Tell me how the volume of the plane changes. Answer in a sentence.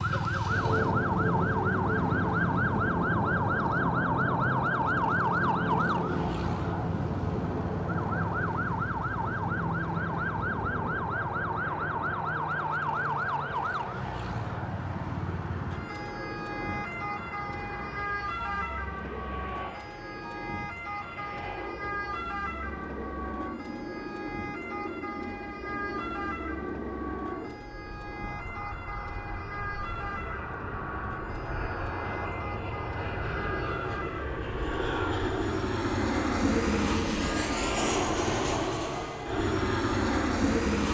The volume of the plane goes down, then up.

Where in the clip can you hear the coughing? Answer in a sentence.
You can't hear the coughing here.